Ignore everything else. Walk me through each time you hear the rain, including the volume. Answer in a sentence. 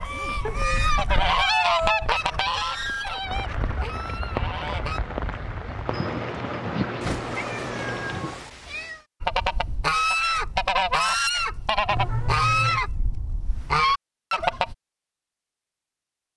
The rain can be heard from 0.0 to 8.5 s, getting louder.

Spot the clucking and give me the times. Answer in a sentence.
The clucking can be heard from 0.0 to 5.0 s and from 9.2 to 14.8 s.